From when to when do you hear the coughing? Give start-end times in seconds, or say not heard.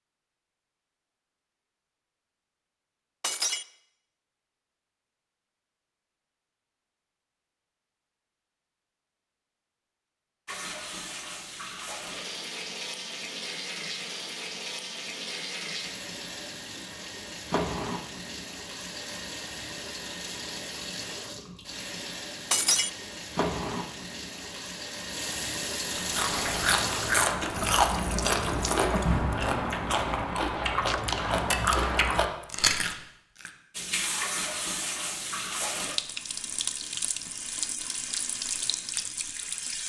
not heard.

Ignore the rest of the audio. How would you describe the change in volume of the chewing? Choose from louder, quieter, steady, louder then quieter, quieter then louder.
steady.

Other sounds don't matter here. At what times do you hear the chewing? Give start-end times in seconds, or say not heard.
25.9-33.5.